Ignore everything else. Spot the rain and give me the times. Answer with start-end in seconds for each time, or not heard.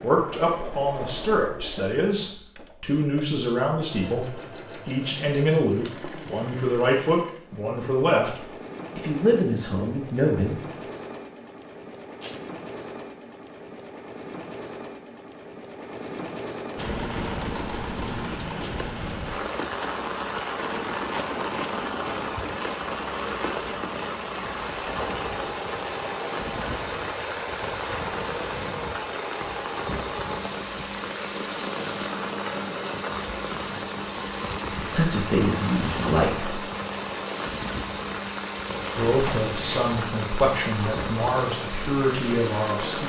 16.8-43.0.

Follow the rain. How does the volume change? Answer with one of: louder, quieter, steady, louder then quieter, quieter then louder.
steady.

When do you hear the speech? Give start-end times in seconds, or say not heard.
0.0-10.6, 34.7-36.6, 39.0-43.0.